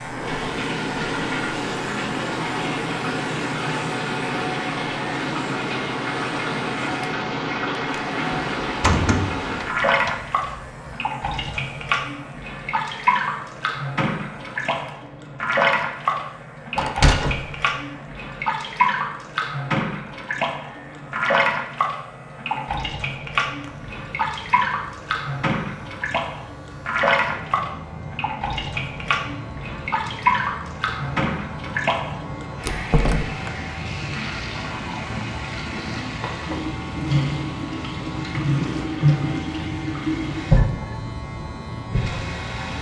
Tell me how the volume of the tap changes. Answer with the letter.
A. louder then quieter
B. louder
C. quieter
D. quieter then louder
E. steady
E.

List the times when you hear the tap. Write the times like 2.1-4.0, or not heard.
0.0-42.7.